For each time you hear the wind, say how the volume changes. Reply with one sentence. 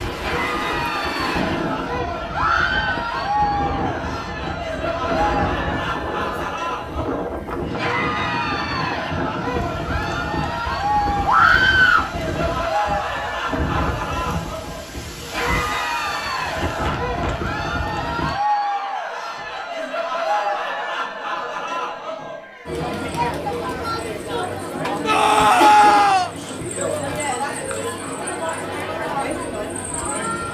The wind can be heard from 0.0 to 18.4 s, at a steady volume.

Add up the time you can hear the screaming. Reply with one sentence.
You can hear the screaming for 3 seconds altogether.